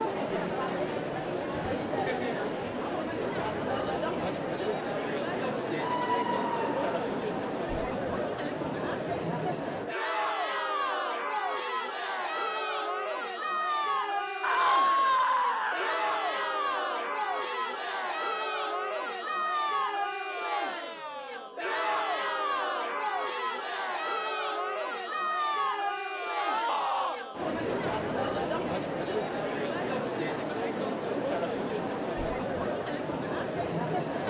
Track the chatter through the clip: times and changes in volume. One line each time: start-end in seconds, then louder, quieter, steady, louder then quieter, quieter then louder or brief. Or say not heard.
0.0-34.2 steady.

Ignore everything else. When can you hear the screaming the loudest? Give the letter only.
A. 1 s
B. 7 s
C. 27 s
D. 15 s
D.